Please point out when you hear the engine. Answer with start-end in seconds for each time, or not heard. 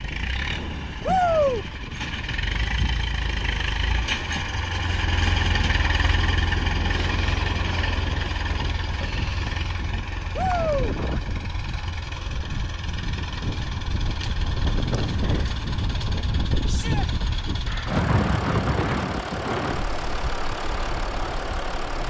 0.0-22.0.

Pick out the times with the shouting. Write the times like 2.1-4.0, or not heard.
1.1-1.6, 10.3-10.9, 16.6-17.1.